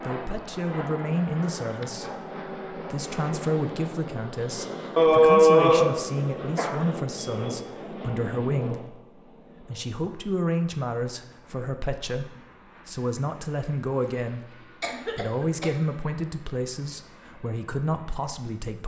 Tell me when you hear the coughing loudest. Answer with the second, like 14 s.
5 s.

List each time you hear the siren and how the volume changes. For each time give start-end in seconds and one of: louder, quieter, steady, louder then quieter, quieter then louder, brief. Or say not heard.
not heard.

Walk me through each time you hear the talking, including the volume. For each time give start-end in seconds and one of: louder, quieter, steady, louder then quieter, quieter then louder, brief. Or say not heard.
0.0-18.8 steady.